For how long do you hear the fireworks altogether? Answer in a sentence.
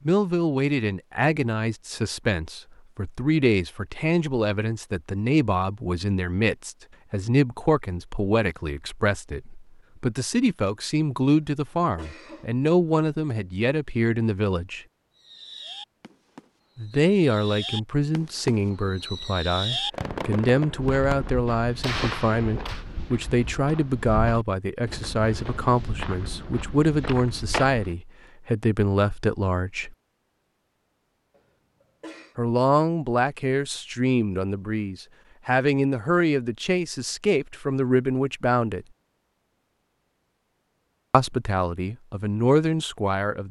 You can hear the fireworks for 8 seconds altogether.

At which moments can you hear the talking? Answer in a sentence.
You can hear the talking from 0.1 to 14.8 s, from 16.8 to 29.9 s, from 32.4 to 38.9 s and from 41.1 to 43.4 s.